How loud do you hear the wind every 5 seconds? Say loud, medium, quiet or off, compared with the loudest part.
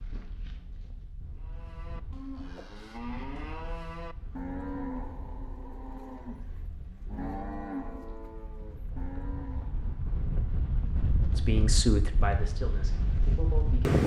quiet, quiet, loud.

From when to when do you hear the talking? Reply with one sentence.
You can hear the talking from 11.3 to 14.0 s.